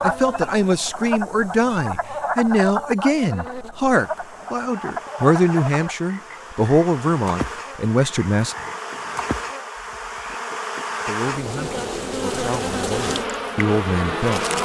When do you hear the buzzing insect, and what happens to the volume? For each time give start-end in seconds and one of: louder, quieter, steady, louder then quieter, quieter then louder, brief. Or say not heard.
0.0-14.6 louder.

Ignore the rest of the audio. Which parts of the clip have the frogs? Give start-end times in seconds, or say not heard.
0.0-10.4.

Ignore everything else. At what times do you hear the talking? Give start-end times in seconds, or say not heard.
0.0-8.6, 11.0-14.6.